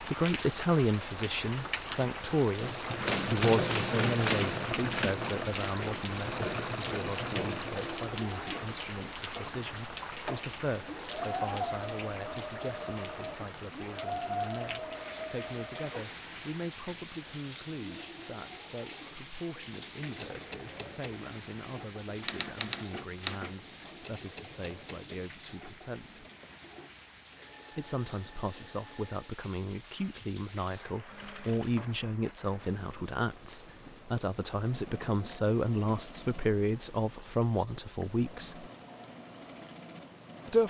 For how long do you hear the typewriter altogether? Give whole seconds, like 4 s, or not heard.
4 s.